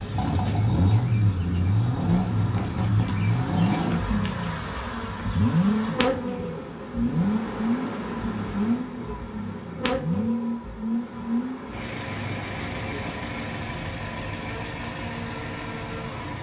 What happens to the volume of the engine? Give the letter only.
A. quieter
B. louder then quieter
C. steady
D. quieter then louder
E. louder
A.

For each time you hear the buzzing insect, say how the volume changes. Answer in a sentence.
The buzzing insect can be heard from 0.0 to 16.2 s, getting louder then quieter.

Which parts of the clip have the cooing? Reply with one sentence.
You can't hear the cooing here.